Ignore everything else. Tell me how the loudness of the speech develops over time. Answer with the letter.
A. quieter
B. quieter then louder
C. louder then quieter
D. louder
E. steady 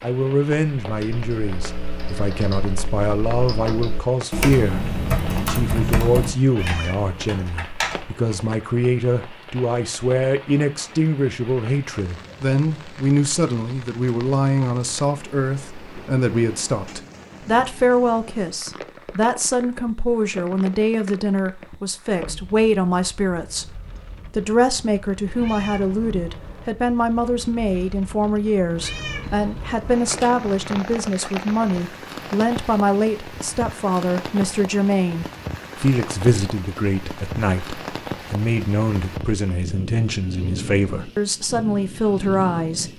E.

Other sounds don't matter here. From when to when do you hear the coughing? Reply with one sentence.
The coughing can't be heard in this clip.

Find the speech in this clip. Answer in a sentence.
The speech can be heard from 0.0 to 42.9 s.